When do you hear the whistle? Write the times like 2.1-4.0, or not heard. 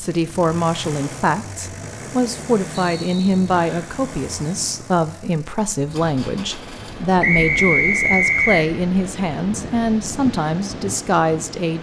2.9-3.9, 7.2-8.7.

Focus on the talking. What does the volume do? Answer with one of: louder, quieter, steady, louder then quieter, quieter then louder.
steady.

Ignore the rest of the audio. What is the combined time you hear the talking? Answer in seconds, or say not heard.
12 s.